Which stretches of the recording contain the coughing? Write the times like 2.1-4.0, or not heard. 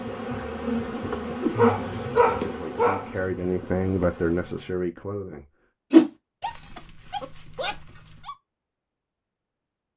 not heard.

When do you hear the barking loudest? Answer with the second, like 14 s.
2 s.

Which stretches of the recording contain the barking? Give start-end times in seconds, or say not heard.
1.6-3.1, 6.4-8.3.